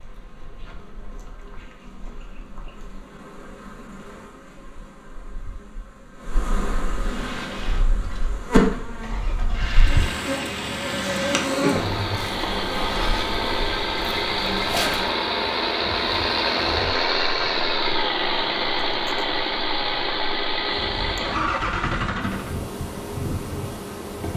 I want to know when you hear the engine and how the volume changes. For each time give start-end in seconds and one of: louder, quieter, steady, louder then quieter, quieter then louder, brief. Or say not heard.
7.0-22.6 louder.